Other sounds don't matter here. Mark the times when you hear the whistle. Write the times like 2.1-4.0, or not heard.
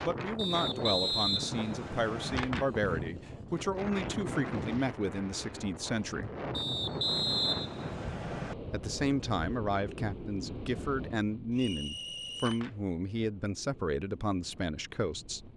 0.3-2.4, 6.5-8.6, 11.5-12.6.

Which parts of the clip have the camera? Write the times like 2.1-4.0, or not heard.
2.2-2.7, 12.2-12.8.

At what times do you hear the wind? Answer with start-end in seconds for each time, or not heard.
0.0-15.5.